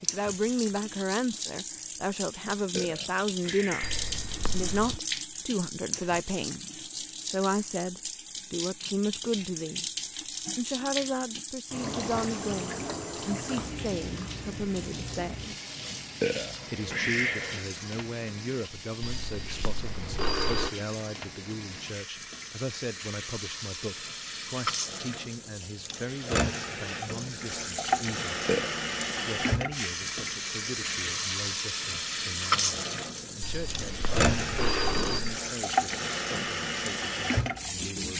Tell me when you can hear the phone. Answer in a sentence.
The phone can be heard from 3.8 to 5.0 s, from 19.0 to 20.7 s and from 33.4 to 35.4 s.